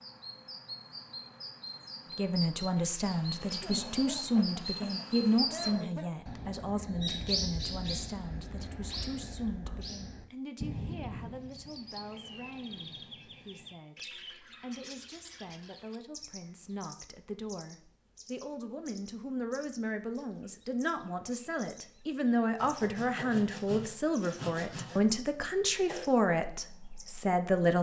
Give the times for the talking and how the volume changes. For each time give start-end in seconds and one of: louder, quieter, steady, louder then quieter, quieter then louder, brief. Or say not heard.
2.1-27.7 quieter then louder.